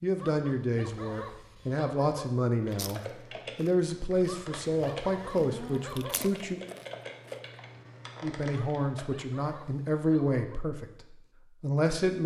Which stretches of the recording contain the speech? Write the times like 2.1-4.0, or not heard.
0.0-6.6, 8.2-12.2.